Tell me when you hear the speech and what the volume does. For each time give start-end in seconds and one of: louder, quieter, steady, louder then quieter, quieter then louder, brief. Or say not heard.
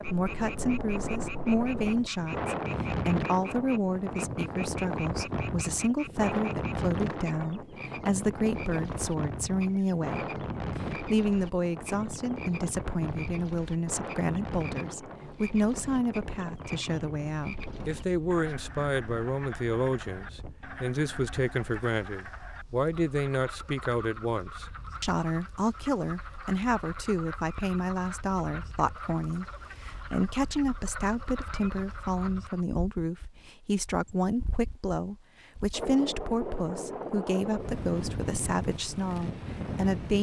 0.0-40.1 steady.